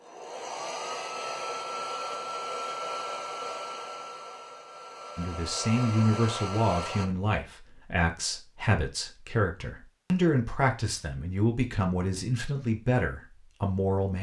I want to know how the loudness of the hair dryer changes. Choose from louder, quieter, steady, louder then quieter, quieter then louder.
quieter then louder.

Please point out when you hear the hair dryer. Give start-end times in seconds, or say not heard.
0.0-7.1.